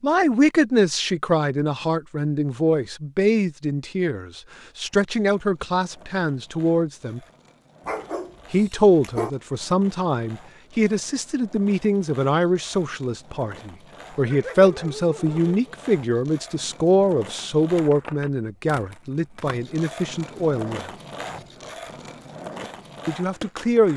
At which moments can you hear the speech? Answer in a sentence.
The speech can be heard from 0.0 to 7.2 s, from 8.5 to 20.9 s and from 23.1 to 23.9 s.